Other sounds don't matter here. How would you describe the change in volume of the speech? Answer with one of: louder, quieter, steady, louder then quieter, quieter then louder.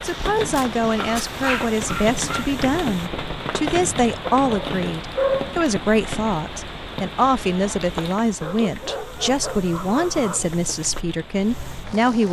steady.